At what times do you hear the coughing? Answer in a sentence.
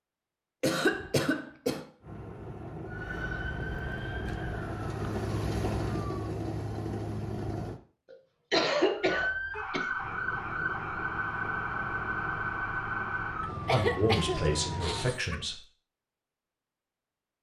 The coughing can be heard from 0.6 to 1.9 s, from 8.1 to 9.9 s and from 13.4 to 15.3 s.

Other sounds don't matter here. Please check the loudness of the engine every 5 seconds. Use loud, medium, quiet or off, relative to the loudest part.
medium, loud, medium, off.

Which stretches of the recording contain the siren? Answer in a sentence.
The siren can be heard from 2.9 to 6.3 s and from 8.9 to 15.2 s.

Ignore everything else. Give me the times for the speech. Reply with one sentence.
The speech can be heard from 13.7 to 15.6 s.